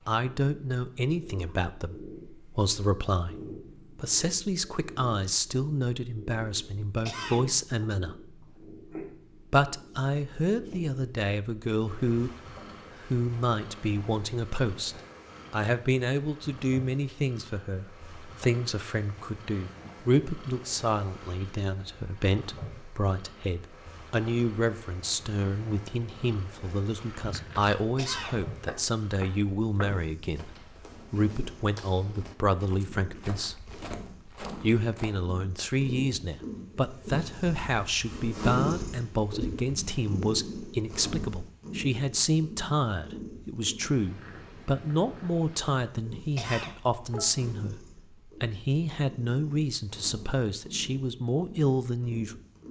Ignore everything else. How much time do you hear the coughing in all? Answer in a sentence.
You can hear the coughing for 3 seconds altogether.